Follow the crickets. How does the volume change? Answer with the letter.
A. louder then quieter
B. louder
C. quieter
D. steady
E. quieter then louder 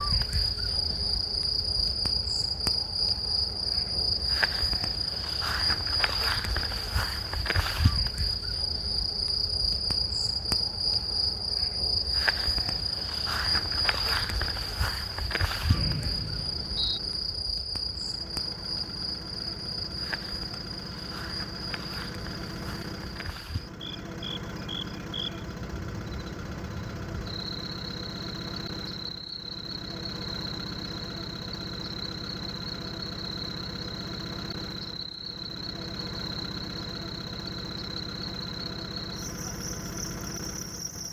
C.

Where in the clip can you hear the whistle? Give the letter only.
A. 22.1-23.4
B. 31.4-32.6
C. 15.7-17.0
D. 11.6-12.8
C.